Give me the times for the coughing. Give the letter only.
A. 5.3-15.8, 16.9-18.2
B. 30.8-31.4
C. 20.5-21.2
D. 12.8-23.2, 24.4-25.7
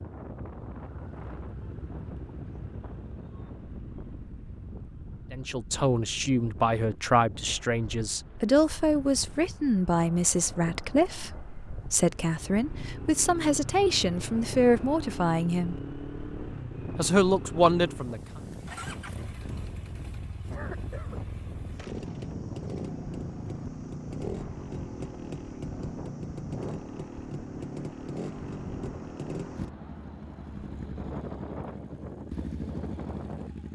C.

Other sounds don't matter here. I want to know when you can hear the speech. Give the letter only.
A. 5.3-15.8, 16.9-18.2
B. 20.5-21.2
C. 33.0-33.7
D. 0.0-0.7
A.